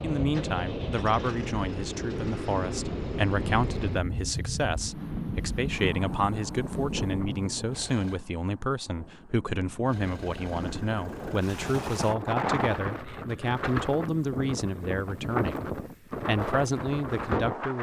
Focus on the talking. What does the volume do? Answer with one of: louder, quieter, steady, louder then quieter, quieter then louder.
steady.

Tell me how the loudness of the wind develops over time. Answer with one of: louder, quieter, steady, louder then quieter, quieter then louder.
quieter then louder.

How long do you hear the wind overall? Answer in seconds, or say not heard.
18 s.